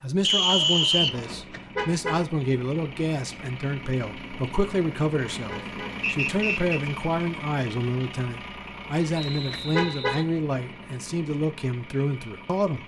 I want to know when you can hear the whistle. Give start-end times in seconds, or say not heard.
0.2-1.1, 6.0-6.8, 9.1-10.2.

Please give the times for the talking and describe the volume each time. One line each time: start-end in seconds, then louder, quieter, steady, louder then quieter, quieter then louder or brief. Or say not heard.
0.0-12.8 steady.